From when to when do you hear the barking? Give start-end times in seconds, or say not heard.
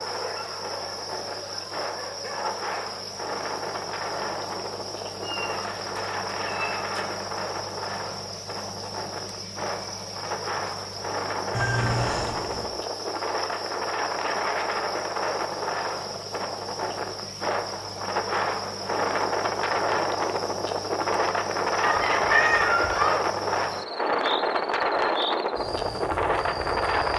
0.0-2.8.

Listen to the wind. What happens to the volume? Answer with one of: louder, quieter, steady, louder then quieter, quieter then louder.
louder.